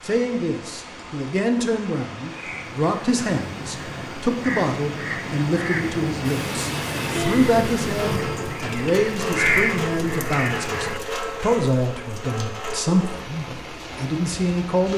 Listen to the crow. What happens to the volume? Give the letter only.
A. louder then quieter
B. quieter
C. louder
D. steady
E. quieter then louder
C.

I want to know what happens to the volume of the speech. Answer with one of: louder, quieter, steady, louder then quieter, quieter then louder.
steady.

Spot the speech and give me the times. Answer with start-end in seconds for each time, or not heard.
0.0-14.9.